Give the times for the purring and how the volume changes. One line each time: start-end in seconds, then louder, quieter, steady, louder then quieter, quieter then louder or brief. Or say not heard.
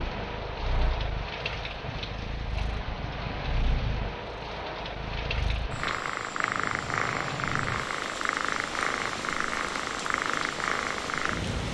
0.2-11.6 louder.